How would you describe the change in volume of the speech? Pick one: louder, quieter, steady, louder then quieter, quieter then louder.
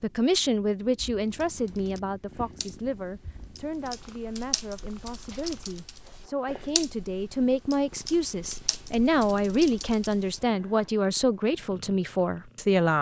quieter then louder.